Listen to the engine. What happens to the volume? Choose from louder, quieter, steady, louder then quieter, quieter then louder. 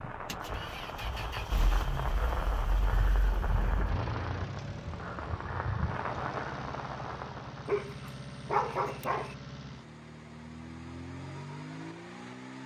steady.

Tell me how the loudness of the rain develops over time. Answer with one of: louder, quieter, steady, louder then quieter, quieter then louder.
steady.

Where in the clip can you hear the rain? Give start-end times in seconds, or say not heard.
0.0-7.8.